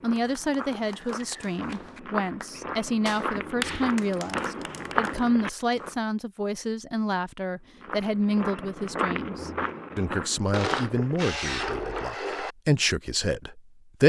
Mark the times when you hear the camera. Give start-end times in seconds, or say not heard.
0.8-1.2, 5.5-6.0, 10.5-12.6.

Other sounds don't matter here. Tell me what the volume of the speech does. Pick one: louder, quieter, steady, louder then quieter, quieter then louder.
steady.